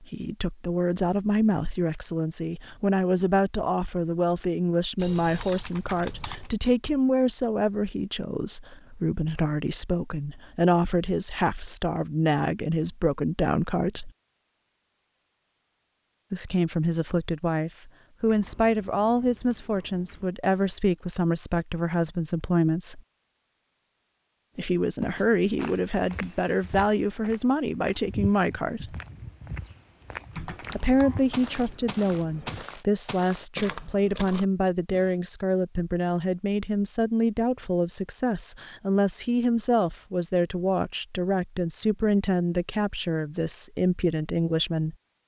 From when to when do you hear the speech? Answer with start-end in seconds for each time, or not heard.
0.0-14.1, 16.3-23.0, 24.6-28.9, 30.8-45.0.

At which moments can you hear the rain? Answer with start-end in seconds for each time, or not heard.
not heard.